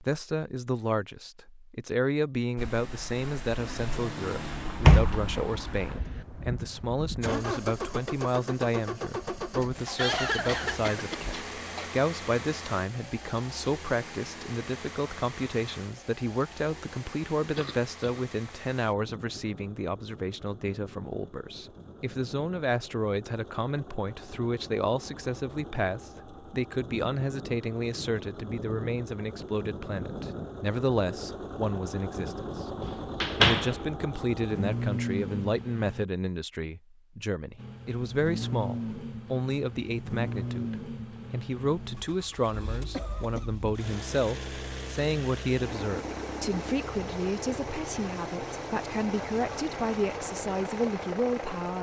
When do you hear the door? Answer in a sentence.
You can hear the door from 4.8 to 6.2 s and from 32.8 to 33.7 s.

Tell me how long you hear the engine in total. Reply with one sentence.
The engine can be heard for 48 seconds in total.